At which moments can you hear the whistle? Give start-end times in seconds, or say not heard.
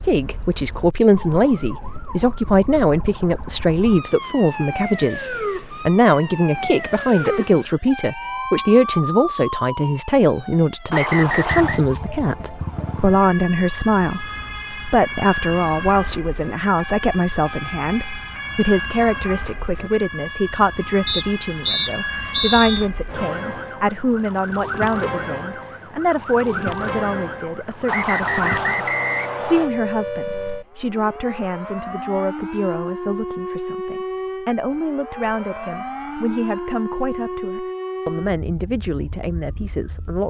10.9-11.8, 21.1-22.9, 27.9-29.7.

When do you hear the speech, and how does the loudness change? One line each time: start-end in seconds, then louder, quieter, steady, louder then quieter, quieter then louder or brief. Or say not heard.
0.0-40.2 quieter.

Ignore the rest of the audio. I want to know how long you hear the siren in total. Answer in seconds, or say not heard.
40 s.